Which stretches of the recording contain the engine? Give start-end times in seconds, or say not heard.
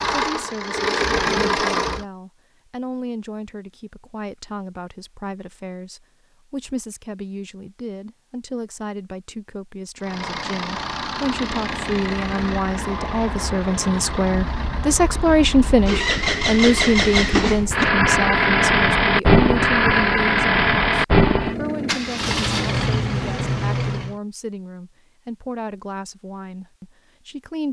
0.0-2.0, 10.0-24.2.